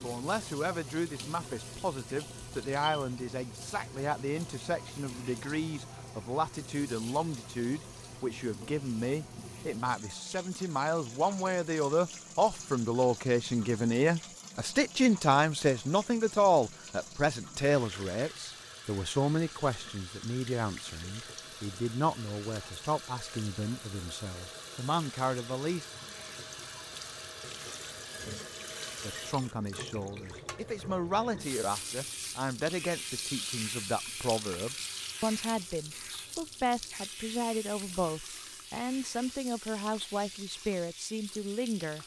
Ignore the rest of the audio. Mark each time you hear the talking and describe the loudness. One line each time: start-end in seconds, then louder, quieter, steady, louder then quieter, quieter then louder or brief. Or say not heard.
0.0-25.9 louder then quieter
29.0-42.0 steady.